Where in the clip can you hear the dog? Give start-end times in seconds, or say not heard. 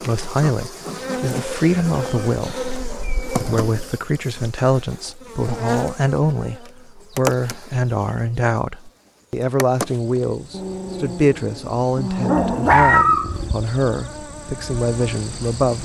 1.2-3.5, 10.5-13.3.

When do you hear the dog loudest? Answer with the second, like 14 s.
13 s.